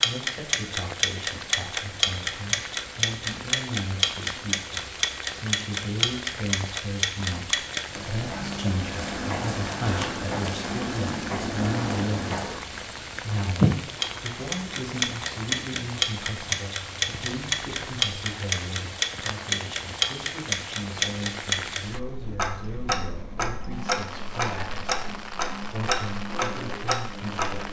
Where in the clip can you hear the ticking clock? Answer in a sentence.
The ticking clock can be heard from 0.0 to 27.6 s.